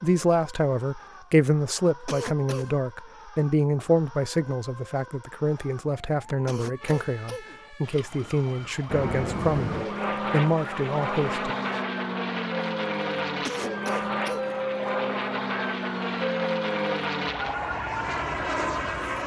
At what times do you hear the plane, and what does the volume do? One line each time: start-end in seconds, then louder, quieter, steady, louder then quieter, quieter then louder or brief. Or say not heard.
8.8-19.2 steady.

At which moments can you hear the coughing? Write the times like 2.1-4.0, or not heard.
2.0-2.8, 6.5-7.6, 13.4-14.6.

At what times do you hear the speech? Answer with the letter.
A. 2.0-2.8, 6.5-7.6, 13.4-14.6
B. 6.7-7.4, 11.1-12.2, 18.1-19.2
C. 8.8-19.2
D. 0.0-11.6
D.